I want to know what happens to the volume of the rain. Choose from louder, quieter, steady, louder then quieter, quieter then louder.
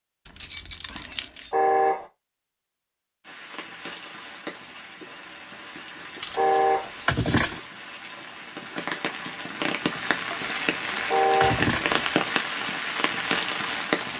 louder.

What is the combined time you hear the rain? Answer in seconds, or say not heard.
11 s.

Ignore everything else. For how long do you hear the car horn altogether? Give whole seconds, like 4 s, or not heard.
2 s.